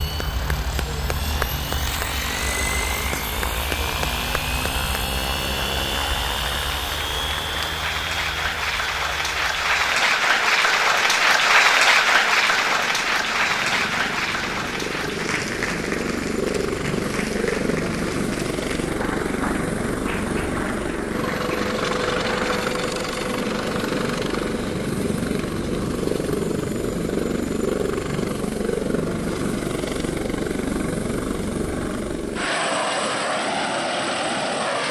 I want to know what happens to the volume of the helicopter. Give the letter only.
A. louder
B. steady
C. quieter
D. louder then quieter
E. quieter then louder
E.